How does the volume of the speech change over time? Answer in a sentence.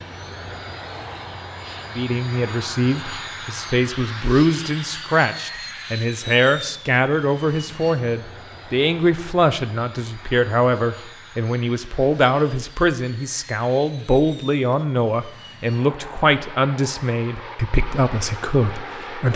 The loudness of the speech stays about the same.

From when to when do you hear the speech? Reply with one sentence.
The speech can be heard from 1.9 to 19.3 s.